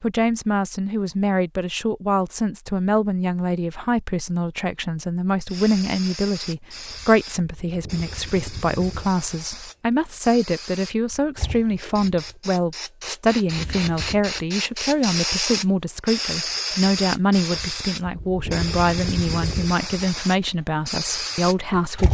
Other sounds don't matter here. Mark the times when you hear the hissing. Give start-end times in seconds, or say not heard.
5.5-22.0.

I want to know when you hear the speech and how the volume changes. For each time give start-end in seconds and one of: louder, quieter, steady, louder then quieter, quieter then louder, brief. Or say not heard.
0.0-22.0 steady.